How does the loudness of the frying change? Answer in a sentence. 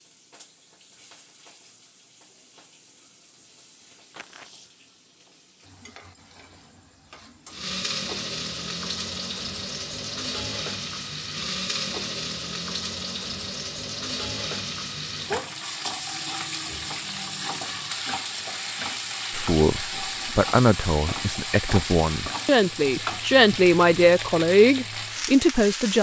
The volume of the frying goes up.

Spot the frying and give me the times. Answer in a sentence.
You can hear the frying from 0.0 to 25.9 s.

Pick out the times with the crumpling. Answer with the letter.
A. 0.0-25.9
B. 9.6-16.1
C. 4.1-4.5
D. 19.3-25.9
C.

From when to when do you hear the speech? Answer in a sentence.
The speech can be heard from 19.3 to 25.9 s.